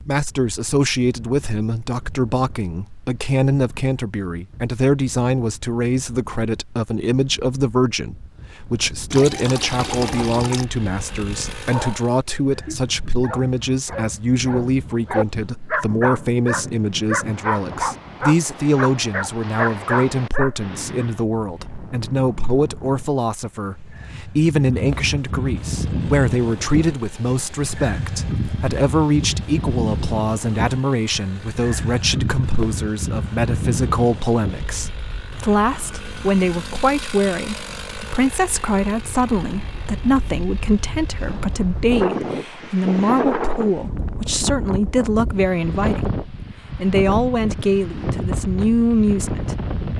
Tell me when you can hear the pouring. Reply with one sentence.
You can hear the pouring from 9.1 to 10.7 s.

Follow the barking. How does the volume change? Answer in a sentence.
The loudness of the barking goes up.